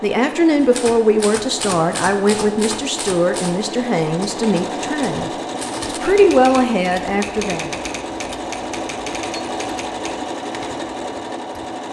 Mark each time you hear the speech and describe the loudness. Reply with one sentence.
You can hear the speech from 0.0 to 7.8 s, getting quieter then louder.